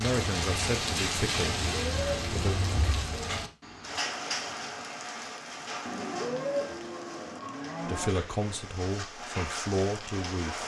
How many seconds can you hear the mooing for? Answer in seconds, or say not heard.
4 s.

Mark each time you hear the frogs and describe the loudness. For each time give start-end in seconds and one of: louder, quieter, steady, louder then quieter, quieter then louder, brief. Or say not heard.
not heard.